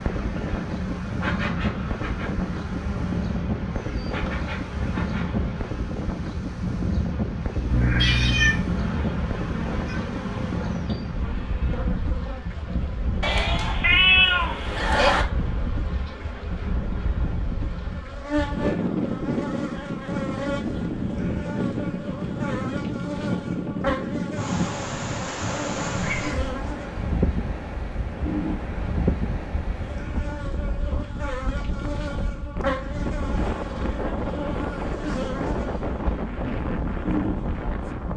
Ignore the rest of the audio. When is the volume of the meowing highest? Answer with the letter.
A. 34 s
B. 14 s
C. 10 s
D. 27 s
B.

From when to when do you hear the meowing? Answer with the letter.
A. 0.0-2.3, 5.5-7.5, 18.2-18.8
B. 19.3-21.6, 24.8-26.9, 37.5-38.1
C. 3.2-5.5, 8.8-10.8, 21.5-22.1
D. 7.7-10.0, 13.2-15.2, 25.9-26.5
D.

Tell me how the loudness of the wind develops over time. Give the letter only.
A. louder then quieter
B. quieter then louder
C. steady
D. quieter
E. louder
C.